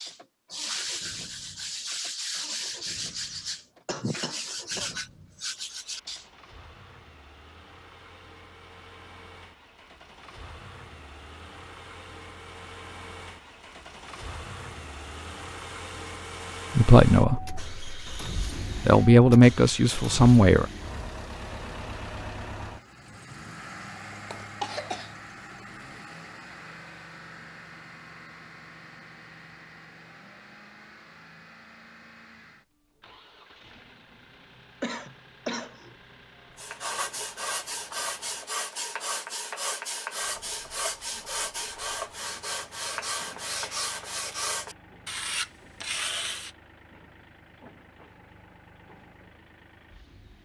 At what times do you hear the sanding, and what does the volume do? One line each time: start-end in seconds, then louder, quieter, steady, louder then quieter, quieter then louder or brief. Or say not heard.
0.0-6.2 steady
36.5-46.5 steady.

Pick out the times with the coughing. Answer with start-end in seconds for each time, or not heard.
3.9-4.9, 24.1-25.6, 34.8-36.0.